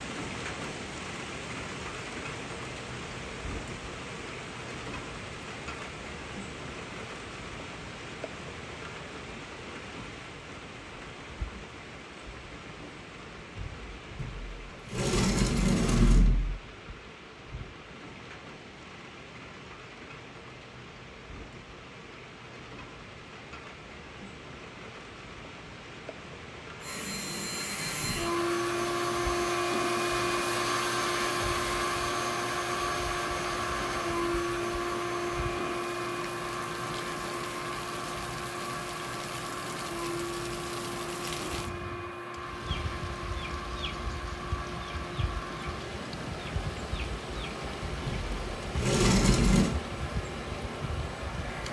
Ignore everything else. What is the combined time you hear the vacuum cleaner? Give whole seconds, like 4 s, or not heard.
25 s.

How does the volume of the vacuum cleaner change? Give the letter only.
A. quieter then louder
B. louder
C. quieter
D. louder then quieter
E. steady
C.